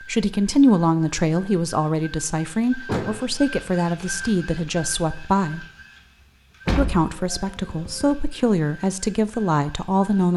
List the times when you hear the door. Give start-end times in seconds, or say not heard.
2.9-3.3, 6.7-8.2.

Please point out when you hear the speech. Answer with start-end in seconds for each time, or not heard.
0.0-5.7, 6.8-10.3.